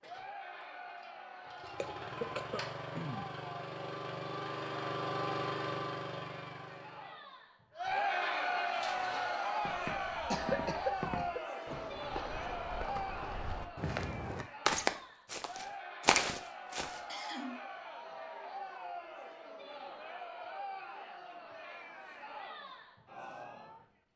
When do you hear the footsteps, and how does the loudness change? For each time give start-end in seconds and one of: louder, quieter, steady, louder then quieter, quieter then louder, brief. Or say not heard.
8.7-17.0 louder.